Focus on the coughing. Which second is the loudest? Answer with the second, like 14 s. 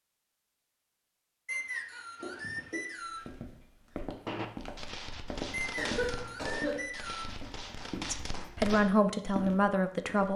6 s.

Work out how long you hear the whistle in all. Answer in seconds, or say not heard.
4 s.